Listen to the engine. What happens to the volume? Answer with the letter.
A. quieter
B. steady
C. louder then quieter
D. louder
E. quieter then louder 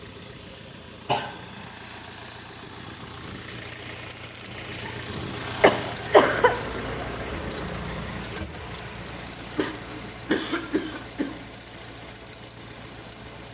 C.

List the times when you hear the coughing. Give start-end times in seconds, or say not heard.
1.1-1.6, 5.6-6.8, 9.6-11.3.